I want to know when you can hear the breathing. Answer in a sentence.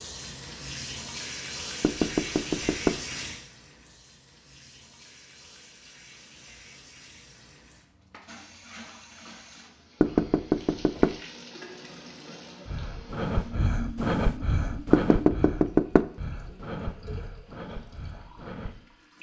You can hear the breathing from 12.7 to 18.8 s.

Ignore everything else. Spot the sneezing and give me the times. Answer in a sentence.
You can't hear the sneezing here.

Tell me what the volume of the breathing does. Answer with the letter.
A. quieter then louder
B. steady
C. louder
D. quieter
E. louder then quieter
D.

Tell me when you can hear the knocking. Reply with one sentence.
The knocking can be heard from 1.8 to 3.0 s, from 10.0 to 11.2 s and from 14.9 to 16.1 s.